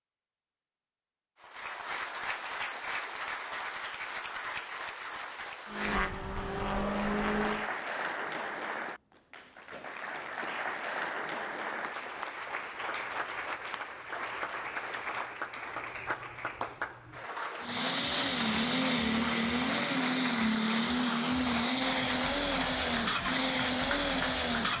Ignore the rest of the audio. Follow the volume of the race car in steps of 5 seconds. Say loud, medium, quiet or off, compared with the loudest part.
off, loud, off, loud, loud.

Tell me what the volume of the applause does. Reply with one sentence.
The volume of the applause stays about the same.